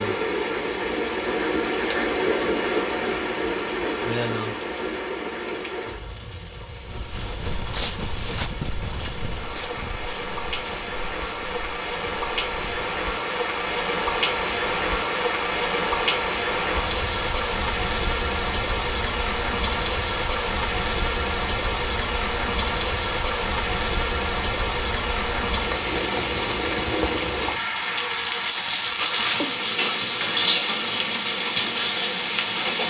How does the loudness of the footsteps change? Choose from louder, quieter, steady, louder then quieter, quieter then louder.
quieter.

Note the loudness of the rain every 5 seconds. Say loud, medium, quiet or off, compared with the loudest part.
loud, medium, loud, loud, loud, loud, loud.